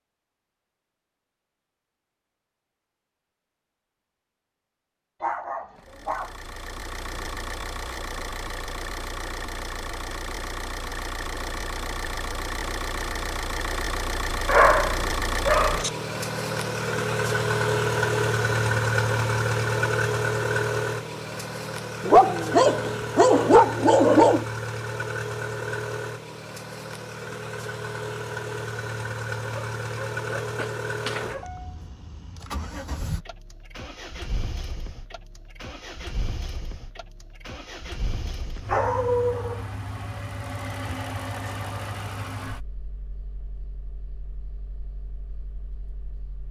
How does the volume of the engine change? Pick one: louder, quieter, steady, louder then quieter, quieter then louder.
louder then quieter.